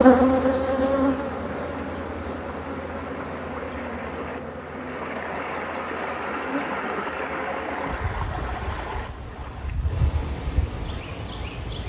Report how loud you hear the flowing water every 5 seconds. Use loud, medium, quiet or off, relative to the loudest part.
medium, loud, medium.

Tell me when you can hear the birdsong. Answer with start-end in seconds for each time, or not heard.
not heard.